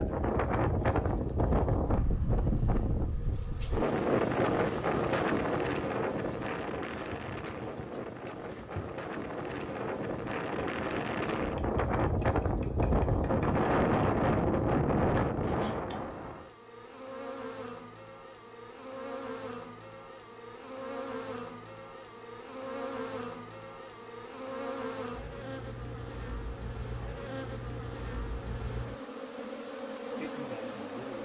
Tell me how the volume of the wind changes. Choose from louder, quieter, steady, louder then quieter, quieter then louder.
quieter then louder.